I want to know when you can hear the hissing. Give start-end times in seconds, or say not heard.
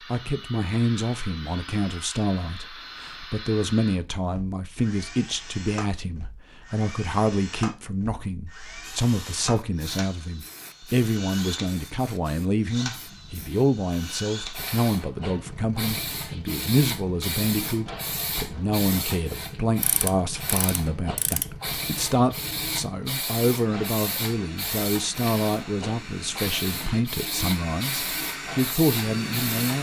8.8-29.7.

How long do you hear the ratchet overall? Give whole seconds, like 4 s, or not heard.
2 s.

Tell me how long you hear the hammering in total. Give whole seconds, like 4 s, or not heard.
not heard.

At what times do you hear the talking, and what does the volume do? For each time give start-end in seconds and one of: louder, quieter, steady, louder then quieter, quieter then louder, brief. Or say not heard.
0.1-29.7 steady.